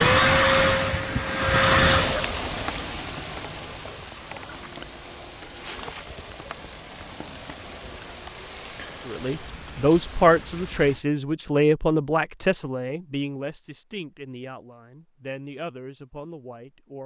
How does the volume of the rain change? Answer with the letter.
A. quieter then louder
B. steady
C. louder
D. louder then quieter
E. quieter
E.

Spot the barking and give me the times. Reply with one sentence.
You can't hear the barking here.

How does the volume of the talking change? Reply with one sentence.
The volume of the talking goes down.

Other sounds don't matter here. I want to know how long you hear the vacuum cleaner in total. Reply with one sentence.
The vacuum cleaner can be heard for 2 seconds in total.